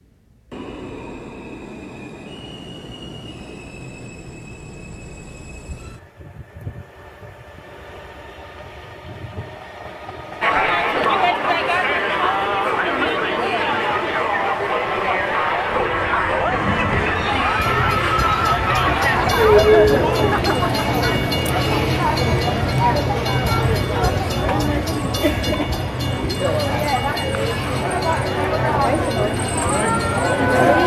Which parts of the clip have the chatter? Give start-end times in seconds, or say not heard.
10.4-30.8.